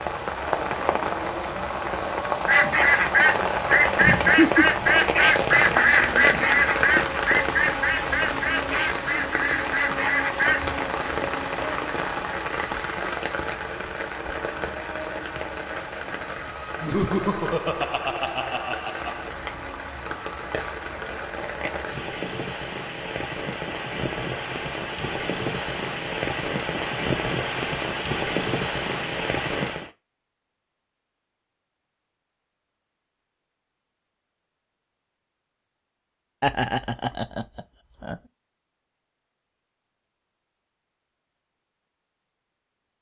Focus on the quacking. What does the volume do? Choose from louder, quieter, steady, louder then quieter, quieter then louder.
quieter.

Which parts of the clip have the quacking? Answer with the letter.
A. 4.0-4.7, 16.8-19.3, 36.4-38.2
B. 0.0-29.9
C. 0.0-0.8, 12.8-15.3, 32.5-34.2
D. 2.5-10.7
D.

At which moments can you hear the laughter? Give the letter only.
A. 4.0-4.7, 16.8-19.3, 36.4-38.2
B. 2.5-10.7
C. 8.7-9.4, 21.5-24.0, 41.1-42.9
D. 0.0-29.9
A.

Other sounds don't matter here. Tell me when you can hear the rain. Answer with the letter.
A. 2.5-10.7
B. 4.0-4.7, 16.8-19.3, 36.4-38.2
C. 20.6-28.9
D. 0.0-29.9
D.